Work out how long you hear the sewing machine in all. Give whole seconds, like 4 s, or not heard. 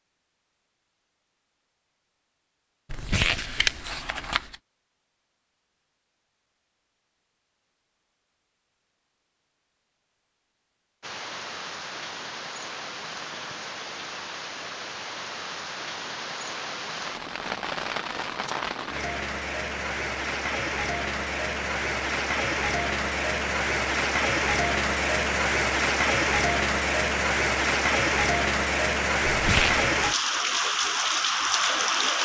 not heard.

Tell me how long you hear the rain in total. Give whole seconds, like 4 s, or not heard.
21 s.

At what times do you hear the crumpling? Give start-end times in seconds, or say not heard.
2.9-4.5, 29.3-29.9.